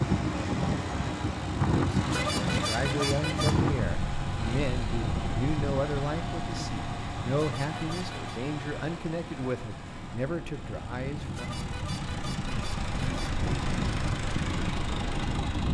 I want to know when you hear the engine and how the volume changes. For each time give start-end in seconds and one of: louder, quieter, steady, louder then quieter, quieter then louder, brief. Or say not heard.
0.0-15.6 quieter then louder.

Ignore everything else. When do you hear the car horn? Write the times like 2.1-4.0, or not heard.
1.9-3.5, 7.2-8.3, 11.2-13.4.